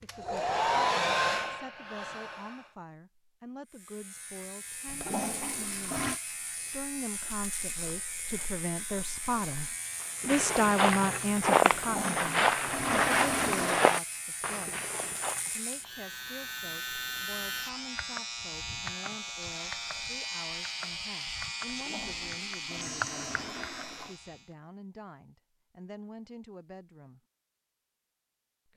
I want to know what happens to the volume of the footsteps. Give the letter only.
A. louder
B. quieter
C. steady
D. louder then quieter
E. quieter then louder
A.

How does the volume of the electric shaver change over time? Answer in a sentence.
The volume of the electric shaver goes up.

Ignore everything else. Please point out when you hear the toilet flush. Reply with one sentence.
The toilet flush can be heard from 4.8 to 6.2 s, from 11.7 to 13.8 s and from 21.6 to 24.2 s.